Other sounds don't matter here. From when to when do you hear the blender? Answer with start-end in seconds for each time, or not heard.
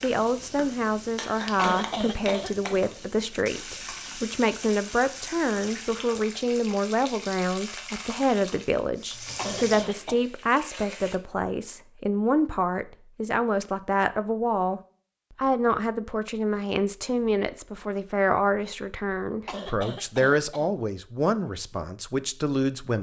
not heard.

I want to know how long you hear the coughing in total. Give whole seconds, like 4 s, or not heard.
3 s.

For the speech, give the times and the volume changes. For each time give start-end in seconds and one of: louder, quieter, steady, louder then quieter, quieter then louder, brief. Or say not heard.
0.0-22.9 steady.